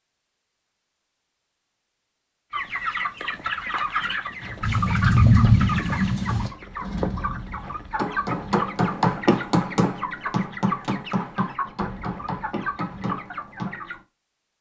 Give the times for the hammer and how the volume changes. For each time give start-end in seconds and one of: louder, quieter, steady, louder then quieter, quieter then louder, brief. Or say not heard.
7.6-13.8 quieter.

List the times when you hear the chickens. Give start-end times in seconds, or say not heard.
2.5-14.0.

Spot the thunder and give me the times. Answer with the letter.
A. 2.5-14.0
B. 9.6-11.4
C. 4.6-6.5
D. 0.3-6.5
C.